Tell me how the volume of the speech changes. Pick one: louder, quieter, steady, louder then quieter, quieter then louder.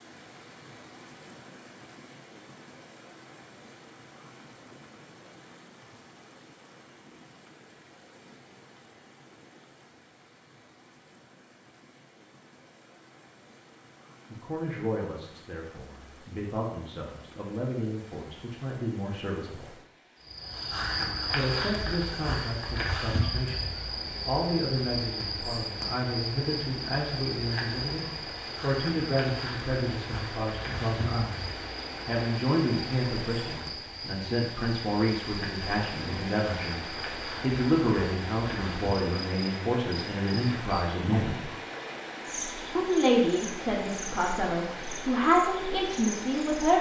louder.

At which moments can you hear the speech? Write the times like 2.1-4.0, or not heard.
14.3-19.8, 21.3-41.5, 42.8-46.7.